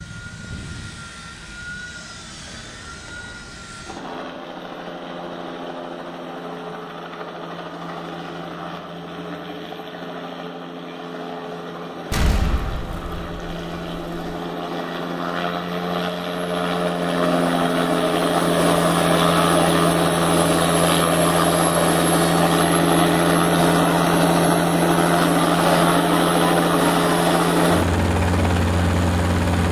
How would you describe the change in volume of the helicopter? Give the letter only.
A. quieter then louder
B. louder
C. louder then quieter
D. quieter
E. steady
B.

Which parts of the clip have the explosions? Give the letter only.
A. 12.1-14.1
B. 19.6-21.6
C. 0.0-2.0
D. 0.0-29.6
A.